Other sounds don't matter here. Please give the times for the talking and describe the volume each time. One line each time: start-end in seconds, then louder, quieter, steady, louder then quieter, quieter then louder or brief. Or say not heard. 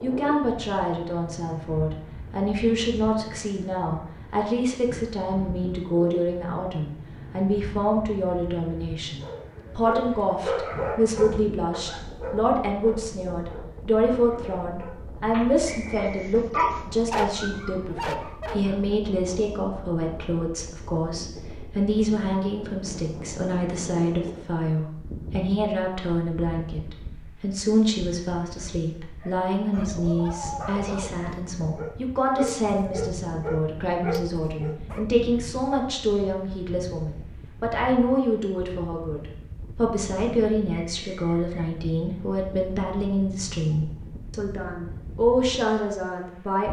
0.0-46.6 steady.